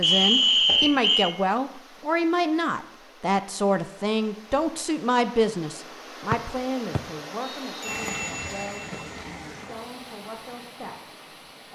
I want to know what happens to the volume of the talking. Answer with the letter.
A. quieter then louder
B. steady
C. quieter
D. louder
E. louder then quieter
C.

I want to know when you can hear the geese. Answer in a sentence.
The geese can't be heard in this clip.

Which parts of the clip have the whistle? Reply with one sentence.
You can hear the whistle from 0.0 to 1.4 s and from 6.3 to 7.9 s.